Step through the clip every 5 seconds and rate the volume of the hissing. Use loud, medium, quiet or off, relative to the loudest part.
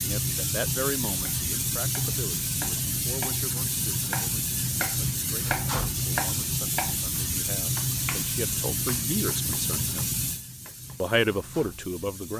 loud, loud, medium.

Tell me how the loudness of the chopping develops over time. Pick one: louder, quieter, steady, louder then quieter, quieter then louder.
louder then quieter.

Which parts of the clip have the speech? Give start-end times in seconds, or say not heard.
0.0-10.2, 11.0-12.3.